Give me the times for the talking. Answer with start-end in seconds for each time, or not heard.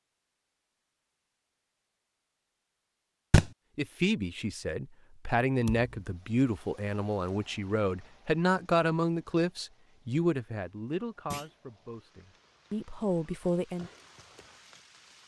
3.8-13.9.